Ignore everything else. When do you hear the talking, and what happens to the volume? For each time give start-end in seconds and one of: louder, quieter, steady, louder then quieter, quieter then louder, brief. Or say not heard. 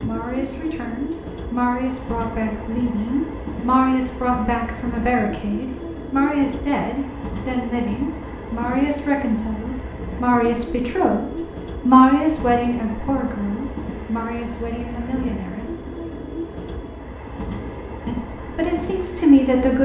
0.0-15.8 louder then quieter
18.1-19.7 brief.